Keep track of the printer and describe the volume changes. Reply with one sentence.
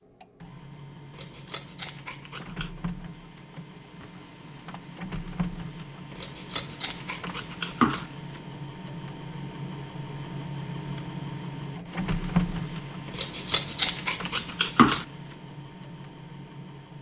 The loudness of the printer goes up, then down.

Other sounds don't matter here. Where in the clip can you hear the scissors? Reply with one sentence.
You can hear the scissors from 1.1 to 2.7 s, from 6.2 to 8.1 s and from 13.1 to 15.1 s.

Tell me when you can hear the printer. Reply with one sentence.
The printer can be heard from 0.0 to 16.9 s.